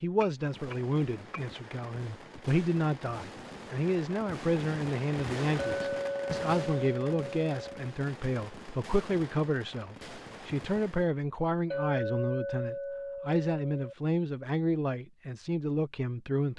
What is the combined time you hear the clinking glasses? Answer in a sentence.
You can hear the clinking glasses for 6 seconds altogether.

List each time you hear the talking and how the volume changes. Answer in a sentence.
You can hear the talking from 0.0 to 16.5 s, at a steady volume.